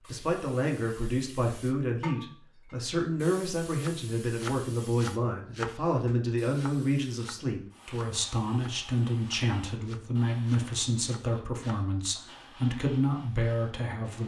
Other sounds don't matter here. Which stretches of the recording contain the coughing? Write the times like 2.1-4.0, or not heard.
not heard.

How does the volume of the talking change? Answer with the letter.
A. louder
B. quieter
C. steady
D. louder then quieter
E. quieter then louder
C.